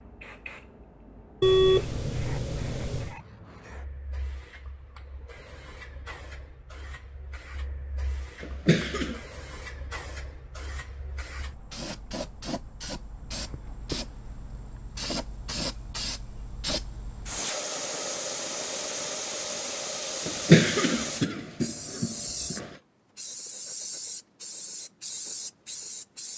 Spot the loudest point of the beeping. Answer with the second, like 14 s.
2 s.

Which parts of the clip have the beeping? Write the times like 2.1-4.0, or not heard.
1.4-3.1.